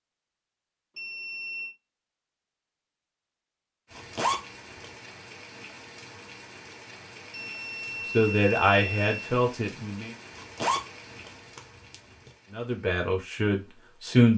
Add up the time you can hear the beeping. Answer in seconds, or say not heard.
3 s.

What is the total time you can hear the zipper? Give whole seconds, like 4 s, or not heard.
3 s.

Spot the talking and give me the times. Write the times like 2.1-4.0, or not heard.
8.1-10.1, 12.5-14.3.